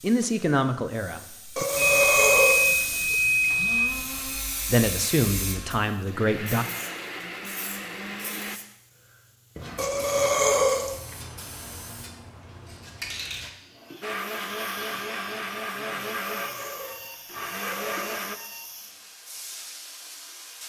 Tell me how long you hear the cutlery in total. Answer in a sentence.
You can't hear the cutlery here.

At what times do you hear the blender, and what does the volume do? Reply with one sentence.
The blender can be heard from 2.6 to 8.6 s, getting quieter then louder; and from 14.0 to 18.4 s, getting quieter then louder.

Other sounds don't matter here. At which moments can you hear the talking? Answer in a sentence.
The talking can be heard from 0.0 to 1.6 s and from 4.7 to 6.7 s.